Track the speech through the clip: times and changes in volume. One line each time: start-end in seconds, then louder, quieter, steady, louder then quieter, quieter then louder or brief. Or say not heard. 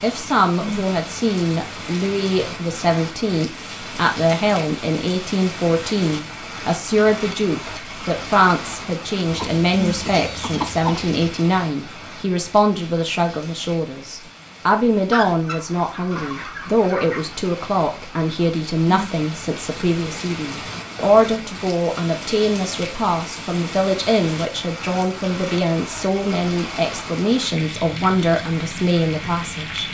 0.0-29.8 steady.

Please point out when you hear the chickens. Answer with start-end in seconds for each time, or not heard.
9.3-11.2, 15.1-17.3.